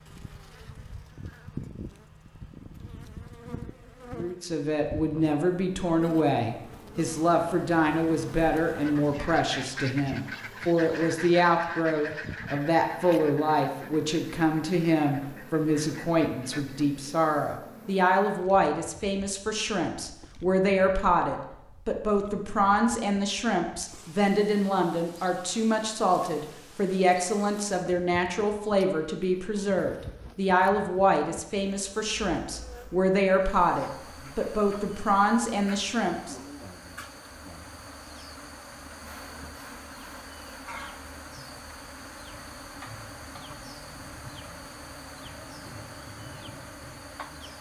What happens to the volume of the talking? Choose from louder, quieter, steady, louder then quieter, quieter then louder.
steady.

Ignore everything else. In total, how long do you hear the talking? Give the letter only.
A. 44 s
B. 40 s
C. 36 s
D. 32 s
D.